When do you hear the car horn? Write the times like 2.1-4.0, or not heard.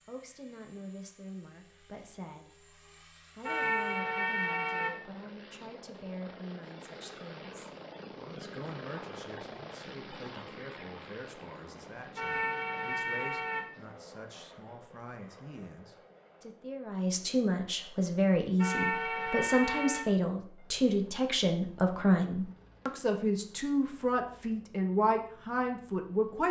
3.4-4.9, 12.2-13.7, 18.6-20.1.